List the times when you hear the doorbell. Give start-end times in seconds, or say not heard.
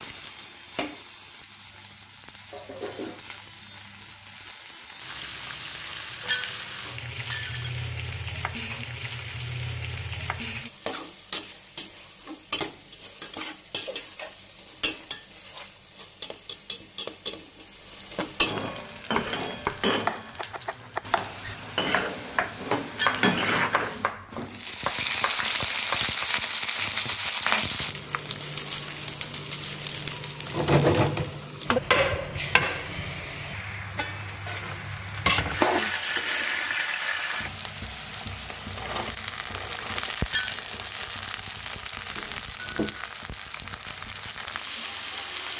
42.1-43.0.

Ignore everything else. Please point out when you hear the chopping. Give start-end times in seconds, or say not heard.
18.7-26.3.